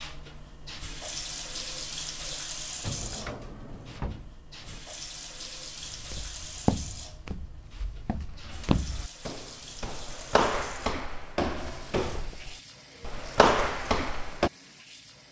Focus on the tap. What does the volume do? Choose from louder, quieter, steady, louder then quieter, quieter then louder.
quieter.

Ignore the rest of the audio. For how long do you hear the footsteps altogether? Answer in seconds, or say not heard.
9 s.